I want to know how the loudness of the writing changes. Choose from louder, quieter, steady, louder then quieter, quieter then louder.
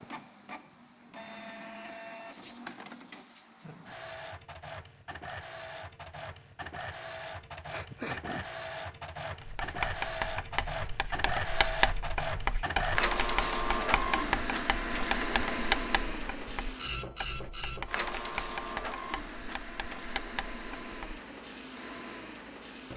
quieter.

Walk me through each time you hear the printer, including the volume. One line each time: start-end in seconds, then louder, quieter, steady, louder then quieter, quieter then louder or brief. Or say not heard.
0.0-22.9 louder then quieter.